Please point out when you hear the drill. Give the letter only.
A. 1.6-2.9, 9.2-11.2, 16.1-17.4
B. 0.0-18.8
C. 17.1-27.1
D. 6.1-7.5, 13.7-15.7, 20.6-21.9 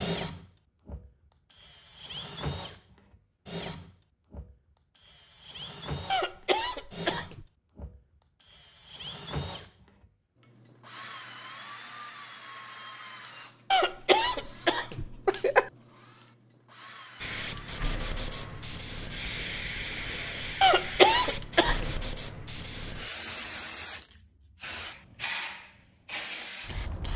B.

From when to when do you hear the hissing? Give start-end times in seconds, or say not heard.
17.1-27.1.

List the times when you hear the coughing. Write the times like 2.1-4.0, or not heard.
6.1-7.5, 13.7-15.7, 20.6-21.9.